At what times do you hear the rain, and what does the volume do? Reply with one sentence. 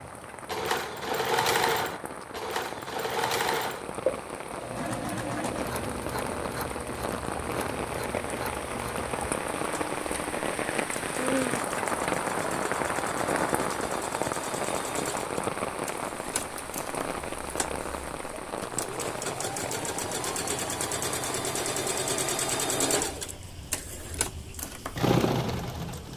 The rain can be heard from 0.0 to 26.1 s, getting louder then quieter.